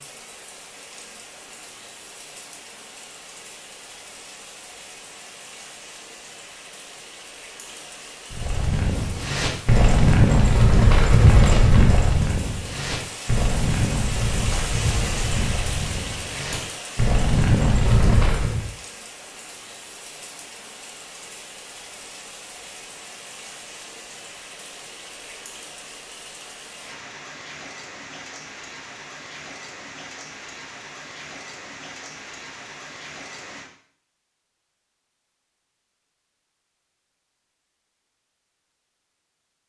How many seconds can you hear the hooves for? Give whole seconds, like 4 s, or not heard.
10 s.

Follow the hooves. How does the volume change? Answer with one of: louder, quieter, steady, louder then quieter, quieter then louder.
quieter then louder.